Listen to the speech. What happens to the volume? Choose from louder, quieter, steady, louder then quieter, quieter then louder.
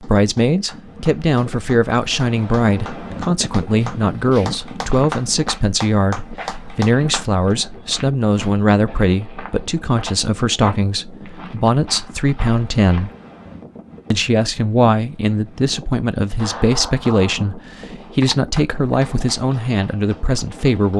steady.